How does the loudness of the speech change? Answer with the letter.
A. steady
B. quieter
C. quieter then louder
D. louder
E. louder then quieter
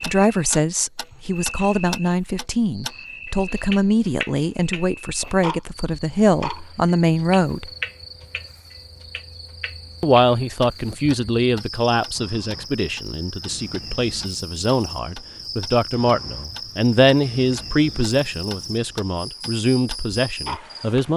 A.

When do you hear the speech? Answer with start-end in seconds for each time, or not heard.
0.0-7.7, 10.0-21.1.